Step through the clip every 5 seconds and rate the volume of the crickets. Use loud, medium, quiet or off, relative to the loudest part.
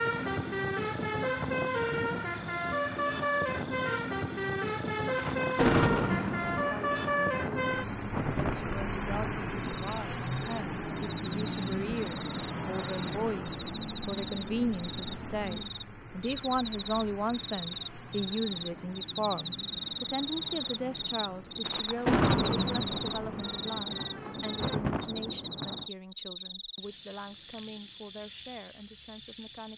quiet, quiet, medium, loud, loud, medium.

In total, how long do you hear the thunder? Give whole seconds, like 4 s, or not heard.
9 s.